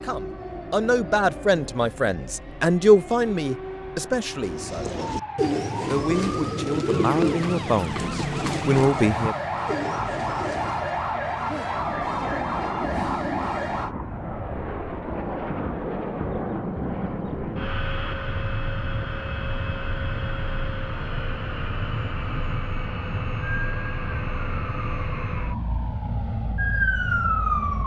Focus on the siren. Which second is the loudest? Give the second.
27 s.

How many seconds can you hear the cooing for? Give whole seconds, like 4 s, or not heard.
6 s.